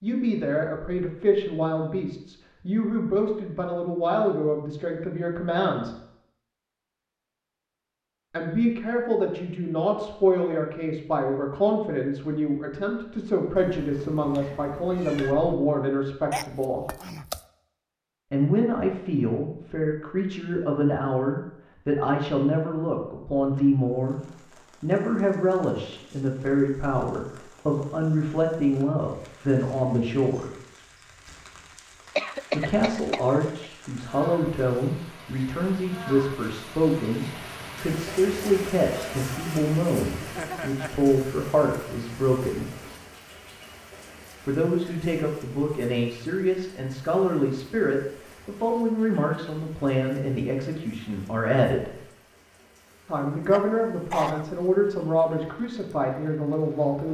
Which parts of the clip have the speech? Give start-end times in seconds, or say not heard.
0.0-6.0, 8.3-16.9, 18.3-30.5, 32.5-42.7, 44.5-52.0, 53.0-57.1.